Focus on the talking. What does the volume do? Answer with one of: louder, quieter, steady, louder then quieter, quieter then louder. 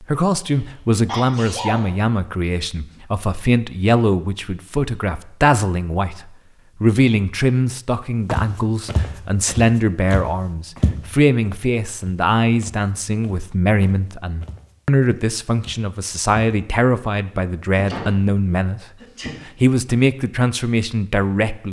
steady.